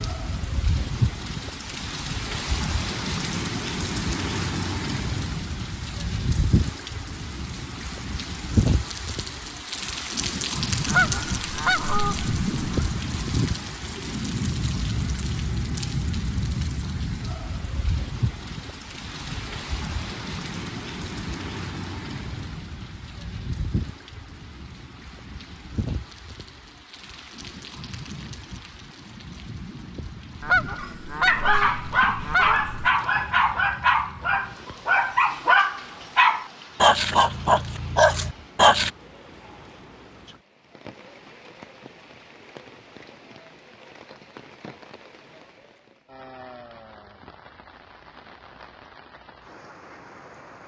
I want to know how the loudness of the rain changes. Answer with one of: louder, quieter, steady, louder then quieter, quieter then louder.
quieter.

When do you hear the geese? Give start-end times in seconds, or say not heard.
10.8-12.8, 30.4-32.9.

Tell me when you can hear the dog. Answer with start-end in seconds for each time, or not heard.
30.8-38.9.